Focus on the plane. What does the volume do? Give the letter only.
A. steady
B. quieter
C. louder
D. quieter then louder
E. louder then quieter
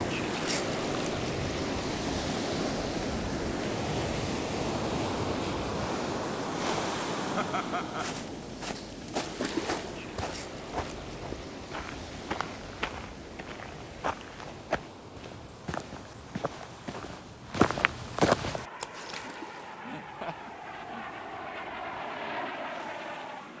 C.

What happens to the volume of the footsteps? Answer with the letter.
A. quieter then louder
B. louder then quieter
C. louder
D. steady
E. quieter
C.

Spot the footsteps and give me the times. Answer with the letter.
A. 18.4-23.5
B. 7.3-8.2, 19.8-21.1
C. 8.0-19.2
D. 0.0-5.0
C.